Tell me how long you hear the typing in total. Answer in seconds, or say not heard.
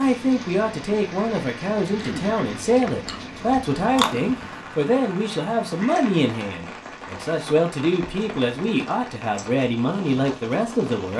not heard.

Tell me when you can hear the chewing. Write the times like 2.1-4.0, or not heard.
1.9-4.7.